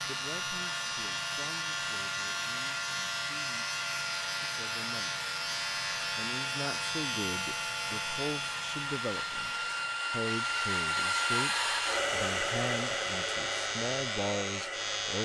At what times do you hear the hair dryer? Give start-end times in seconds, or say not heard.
0.0-15.2.